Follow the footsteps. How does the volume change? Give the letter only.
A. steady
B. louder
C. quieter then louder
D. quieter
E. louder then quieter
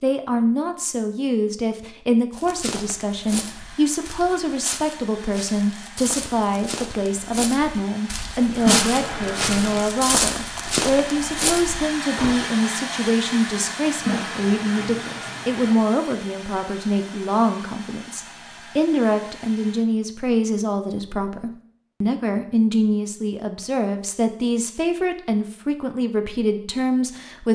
B.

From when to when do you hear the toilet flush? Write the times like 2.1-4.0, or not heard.
8.6-9.9, 13.9-15.8.